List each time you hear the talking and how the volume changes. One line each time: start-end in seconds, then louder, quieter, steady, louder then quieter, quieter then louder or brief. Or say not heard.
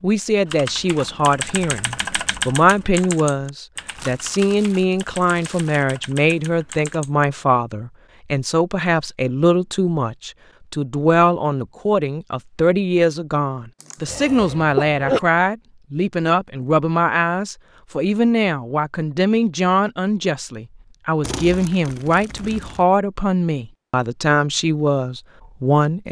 0.0-26.0 steady.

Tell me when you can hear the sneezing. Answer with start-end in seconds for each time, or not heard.
14.1-15.2.